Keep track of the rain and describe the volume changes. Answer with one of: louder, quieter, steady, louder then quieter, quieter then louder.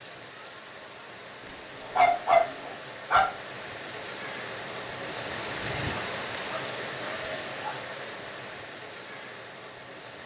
louder then quieter.